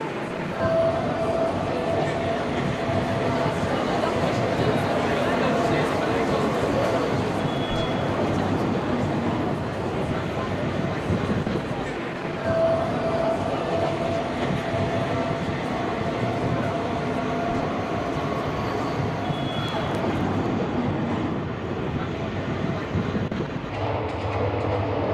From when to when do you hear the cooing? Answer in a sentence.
The cooing can't be heard in this clip.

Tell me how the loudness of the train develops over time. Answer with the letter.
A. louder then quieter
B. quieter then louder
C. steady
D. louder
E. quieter
C.